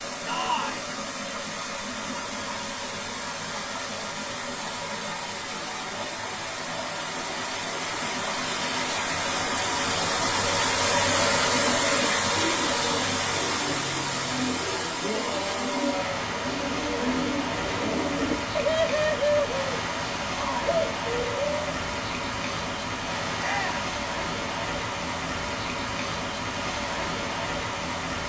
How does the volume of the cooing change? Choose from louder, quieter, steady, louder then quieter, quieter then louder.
louder.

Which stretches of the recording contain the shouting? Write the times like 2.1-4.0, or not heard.
0.2-0.8, 15.0-16.2, 23.4-23.9.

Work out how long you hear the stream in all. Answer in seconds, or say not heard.
28 s.